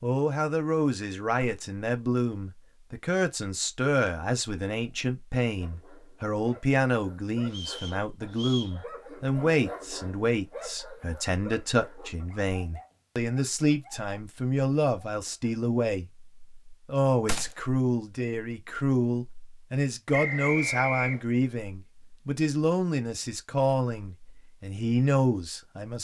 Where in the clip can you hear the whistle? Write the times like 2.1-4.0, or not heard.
7.5-8.8, 20.1-21.2.